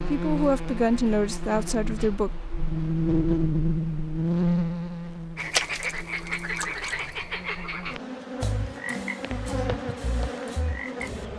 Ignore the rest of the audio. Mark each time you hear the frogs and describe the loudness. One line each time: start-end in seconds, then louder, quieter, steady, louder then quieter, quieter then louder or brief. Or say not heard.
5.3-11.2 quieter.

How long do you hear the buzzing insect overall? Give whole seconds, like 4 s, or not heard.
11 s.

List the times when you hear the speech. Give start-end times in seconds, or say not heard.
0.1-2.3.